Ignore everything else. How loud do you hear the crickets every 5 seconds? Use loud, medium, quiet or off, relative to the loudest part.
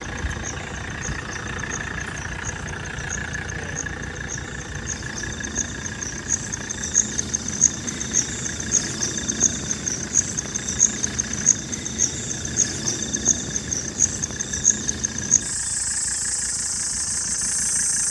quiet, loud, loud, loud.